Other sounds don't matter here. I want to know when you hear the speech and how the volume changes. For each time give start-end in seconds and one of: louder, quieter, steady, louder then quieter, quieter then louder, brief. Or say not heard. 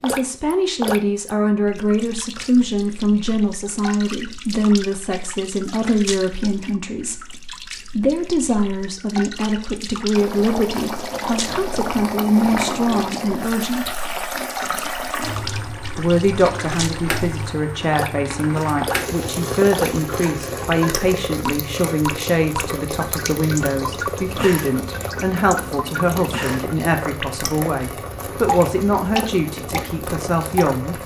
0.0-13.9 steady
15.9-31.0 steady.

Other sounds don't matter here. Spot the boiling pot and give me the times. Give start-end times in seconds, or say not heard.
10.2-31.0.